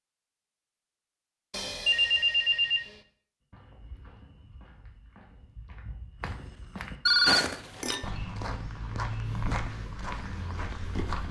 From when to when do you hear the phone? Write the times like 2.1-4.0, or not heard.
1.5-3.0, 7.0-8.1.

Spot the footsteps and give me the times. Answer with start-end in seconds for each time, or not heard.
3.5-11.2.